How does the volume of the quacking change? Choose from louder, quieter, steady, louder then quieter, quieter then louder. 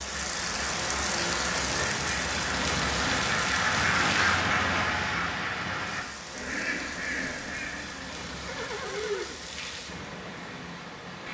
louder then quieter.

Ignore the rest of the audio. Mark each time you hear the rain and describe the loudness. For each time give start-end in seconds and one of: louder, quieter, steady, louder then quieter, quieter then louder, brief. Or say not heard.
0.0-11.2 quieter.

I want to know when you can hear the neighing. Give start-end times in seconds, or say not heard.
8.2-9.3.